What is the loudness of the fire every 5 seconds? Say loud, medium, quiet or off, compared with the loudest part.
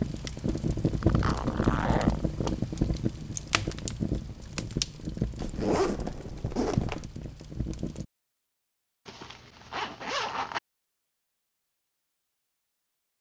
loud, medium, off.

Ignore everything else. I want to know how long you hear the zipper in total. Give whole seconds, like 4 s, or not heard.
5 s.